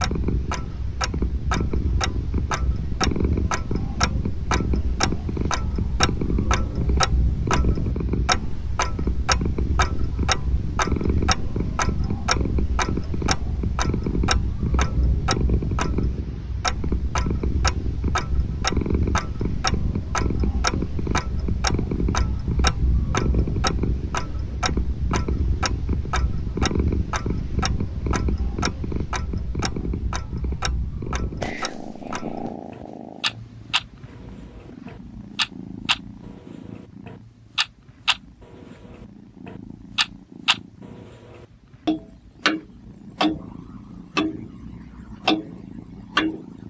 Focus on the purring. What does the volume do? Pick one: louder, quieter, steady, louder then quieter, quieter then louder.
quieter.